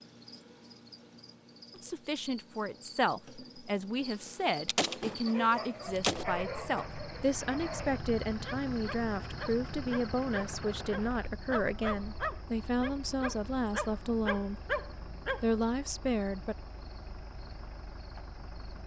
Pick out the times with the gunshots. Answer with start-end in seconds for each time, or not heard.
4.7-6.2.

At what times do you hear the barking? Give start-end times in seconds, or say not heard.
5.2-15.4.